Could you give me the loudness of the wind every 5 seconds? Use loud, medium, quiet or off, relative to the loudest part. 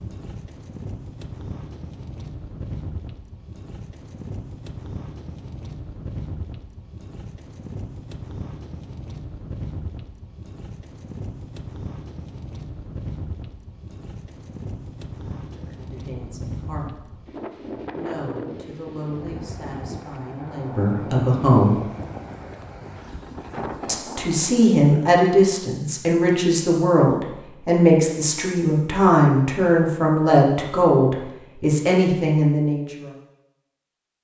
loud, loud, loud, loud, loud, off, off.